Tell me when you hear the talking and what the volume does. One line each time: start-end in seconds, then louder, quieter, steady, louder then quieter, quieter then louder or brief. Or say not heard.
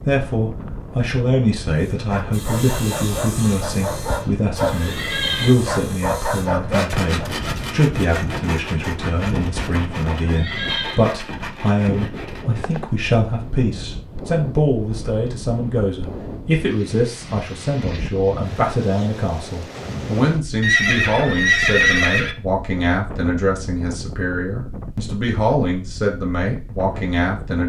0.1-27.6 steady.